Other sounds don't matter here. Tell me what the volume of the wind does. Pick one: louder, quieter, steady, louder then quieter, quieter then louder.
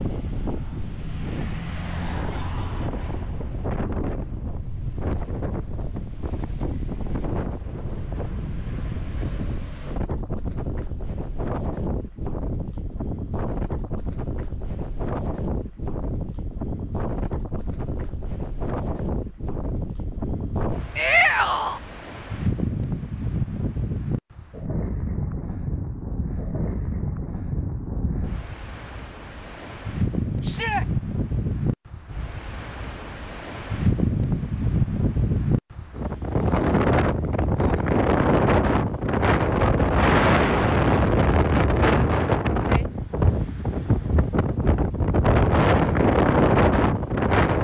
louder.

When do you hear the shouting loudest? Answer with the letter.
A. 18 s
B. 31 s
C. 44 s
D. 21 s
D.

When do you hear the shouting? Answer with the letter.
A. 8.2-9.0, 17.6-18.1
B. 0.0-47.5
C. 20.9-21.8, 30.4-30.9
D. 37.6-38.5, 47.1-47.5
C.